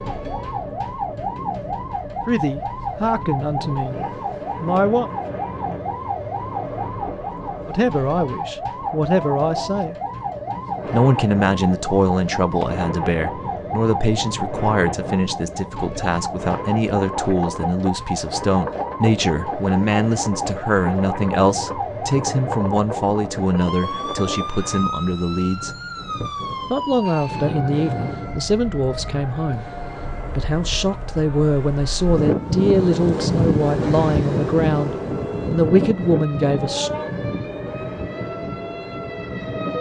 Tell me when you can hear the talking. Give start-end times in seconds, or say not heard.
2.2-4.0, 4.6-5.1, 7.7-9.9, 10.9-25.7, 26.7-29.7, 30.4-36.9.